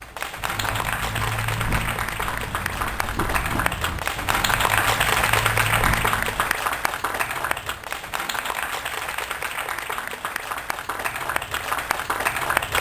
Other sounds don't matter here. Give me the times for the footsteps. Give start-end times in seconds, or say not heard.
0.3-6.5.